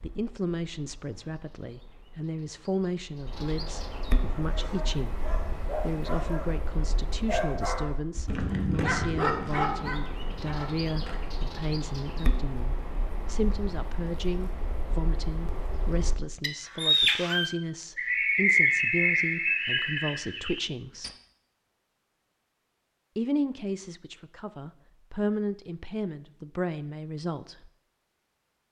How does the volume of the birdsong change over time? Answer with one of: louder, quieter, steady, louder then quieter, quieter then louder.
louder.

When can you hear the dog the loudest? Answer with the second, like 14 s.
9 s.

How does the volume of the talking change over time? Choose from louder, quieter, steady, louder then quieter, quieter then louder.
steady.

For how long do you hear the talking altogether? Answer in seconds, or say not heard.
26 s.